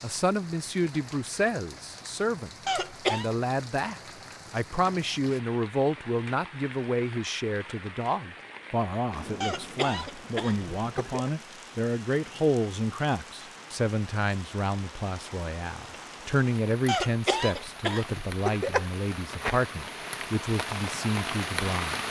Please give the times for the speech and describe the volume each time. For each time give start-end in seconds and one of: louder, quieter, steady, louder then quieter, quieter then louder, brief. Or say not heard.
0.0-22.0 steady.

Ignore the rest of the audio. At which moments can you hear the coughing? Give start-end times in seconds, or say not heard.
2.6-3.3, 9.4-11.3, 16.9-18.9.